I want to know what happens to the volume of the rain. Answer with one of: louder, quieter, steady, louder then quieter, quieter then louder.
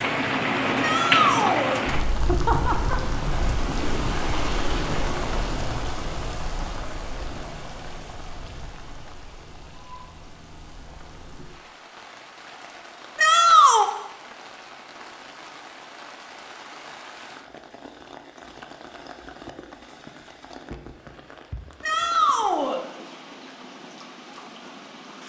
quieter.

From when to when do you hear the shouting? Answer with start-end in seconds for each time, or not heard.
0.8-1.8, 13.2-13.9, 21.8-22.8.